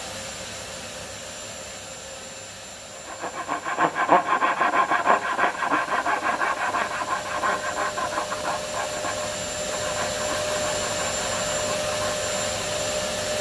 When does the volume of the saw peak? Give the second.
4 s.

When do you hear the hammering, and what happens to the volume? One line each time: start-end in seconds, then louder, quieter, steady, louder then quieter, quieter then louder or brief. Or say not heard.
not heard.